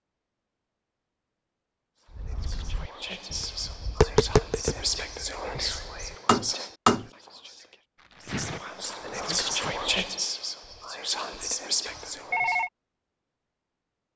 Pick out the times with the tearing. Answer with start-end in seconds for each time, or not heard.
8.0-9.8.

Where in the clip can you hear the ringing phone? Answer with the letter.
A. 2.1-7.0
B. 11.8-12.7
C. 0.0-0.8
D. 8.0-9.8
B.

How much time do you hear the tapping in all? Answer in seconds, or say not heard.
5 s.